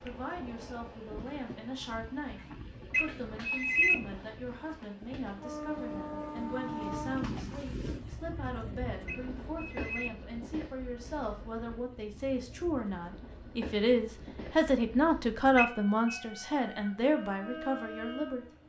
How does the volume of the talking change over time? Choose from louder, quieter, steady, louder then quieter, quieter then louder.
louder.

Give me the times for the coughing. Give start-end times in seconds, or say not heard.
not heard.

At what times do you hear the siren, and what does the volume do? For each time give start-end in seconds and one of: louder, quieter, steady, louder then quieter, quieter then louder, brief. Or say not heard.
not heard.